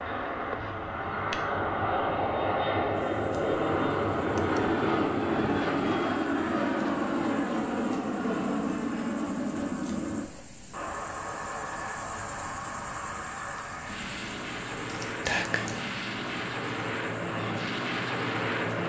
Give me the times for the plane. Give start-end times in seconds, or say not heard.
0.0-18.8.